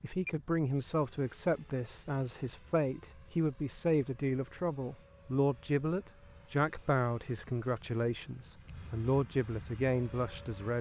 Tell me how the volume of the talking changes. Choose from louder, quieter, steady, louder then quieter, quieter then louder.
steady.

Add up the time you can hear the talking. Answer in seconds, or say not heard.
11 s.